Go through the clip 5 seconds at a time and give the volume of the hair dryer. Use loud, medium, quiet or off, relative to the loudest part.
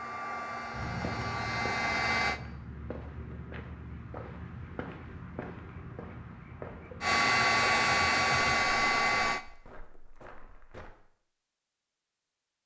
medium, loud, off.